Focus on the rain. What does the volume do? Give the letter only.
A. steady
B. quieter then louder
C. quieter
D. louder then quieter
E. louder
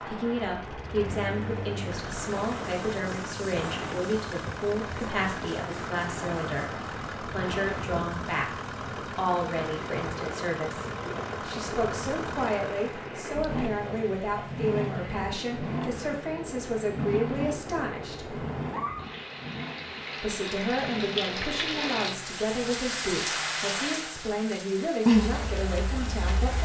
E.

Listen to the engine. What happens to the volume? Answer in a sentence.
The volume of the engine goes down.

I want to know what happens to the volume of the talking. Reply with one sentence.
The volume of the talking stays about the same.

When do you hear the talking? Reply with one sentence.
The talking can be heard from 0.1 to 18.4 s and from 20.2 to 26.6 s.